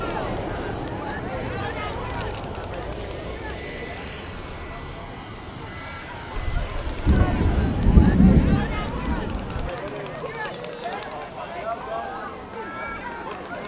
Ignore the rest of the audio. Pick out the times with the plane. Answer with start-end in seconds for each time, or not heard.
0.0-13.6.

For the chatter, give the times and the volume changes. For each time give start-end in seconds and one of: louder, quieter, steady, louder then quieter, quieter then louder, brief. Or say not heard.
0.0-13.6 quieter then louder.